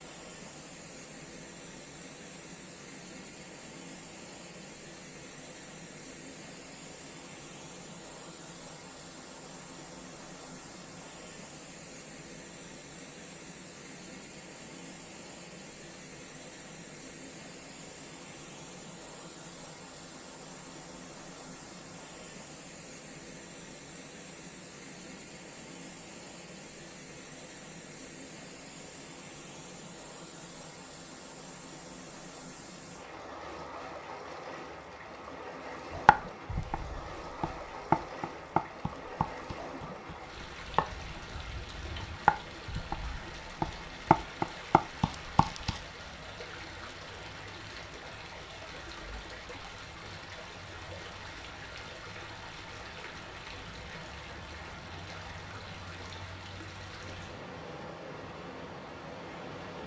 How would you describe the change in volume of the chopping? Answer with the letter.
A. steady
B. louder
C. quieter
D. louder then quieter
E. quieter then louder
E.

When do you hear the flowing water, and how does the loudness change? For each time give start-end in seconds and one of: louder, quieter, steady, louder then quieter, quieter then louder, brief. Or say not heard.
0.0-59.8 steady.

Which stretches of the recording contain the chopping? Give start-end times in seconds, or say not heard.
36.0-45.8.